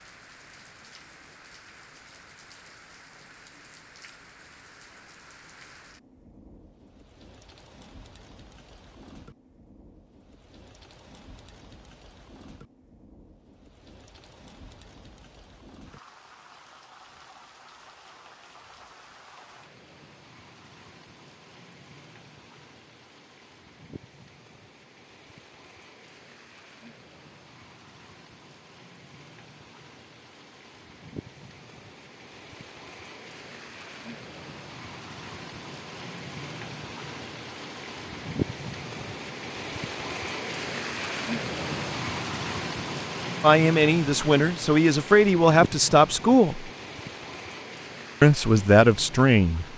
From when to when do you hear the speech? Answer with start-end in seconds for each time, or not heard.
43.4-46.7, 48.2-49.6.